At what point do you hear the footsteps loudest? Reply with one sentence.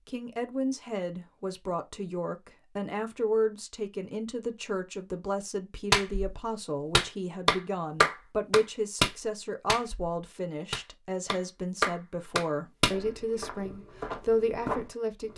The loudest moment of the footsteps is at 15 seconds.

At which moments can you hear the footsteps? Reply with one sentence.
You can hear the footsteps from 12.9 to 15.3 s.